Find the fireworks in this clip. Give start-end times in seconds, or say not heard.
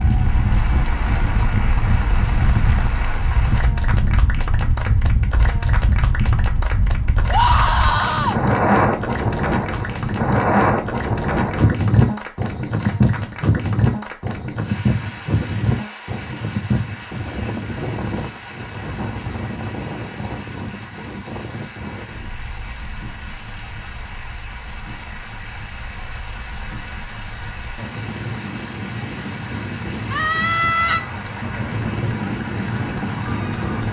not heard.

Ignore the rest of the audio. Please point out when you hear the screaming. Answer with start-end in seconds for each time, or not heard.
7.2-8.4, 30.1-31.1.